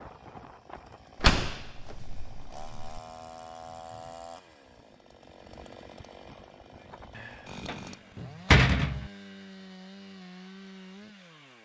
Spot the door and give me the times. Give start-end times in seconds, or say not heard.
1.2-2.9, 7.2-9.1.